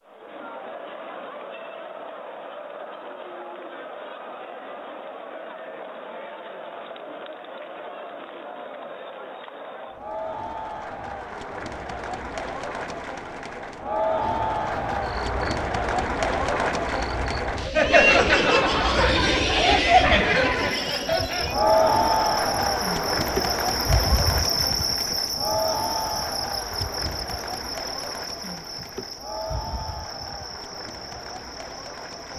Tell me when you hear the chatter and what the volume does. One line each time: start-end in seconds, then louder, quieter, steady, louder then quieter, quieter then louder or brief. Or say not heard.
0.1-32.3 louder then quieter.